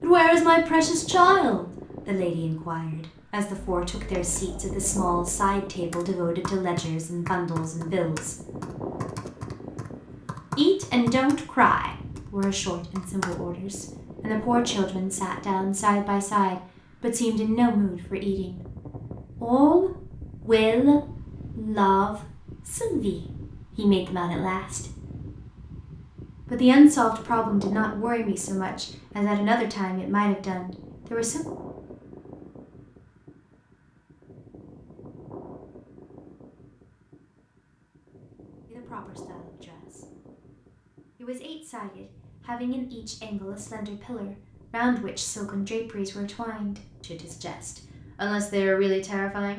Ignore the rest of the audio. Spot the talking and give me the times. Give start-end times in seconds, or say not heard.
0.0-8.3, 10.6-18.6, 19.4-24.8, 26.5-31.4, 38.6-40.0, 41.1-49.5.